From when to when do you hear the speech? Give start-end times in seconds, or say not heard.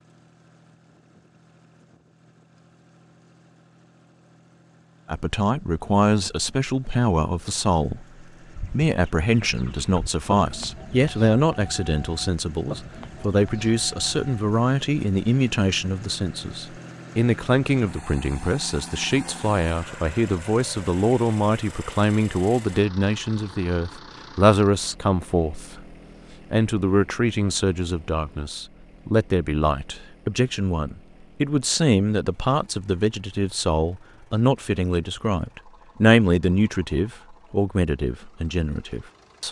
5.0-25.9, 26.5-39.4.